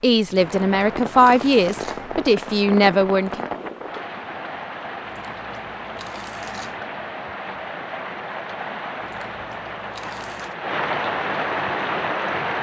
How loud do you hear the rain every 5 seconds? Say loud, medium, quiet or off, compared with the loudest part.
medium, medium, loud.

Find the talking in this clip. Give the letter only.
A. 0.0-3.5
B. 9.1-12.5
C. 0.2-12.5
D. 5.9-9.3
A.